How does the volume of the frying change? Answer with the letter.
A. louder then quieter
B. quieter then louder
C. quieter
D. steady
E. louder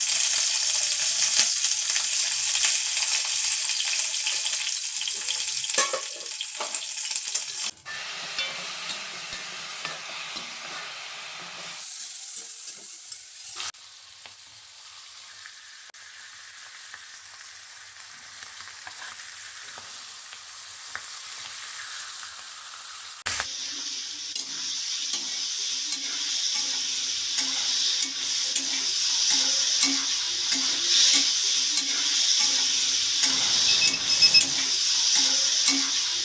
B.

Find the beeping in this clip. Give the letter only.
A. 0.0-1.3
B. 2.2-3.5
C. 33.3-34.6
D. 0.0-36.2
C.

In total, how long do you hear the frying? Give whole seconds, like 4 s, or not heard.
36 s.